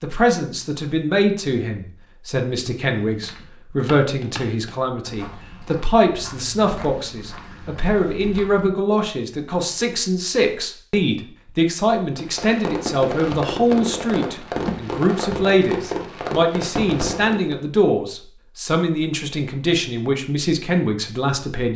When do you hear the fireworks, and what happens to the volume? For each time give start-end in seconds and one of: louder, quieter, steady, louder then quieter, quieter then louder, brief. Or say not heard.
12.2-17.6 steady.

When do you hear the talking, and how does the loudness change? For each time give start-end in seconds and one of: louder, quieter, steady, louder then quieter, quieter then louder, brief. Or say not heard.
0.0-21.7 steady.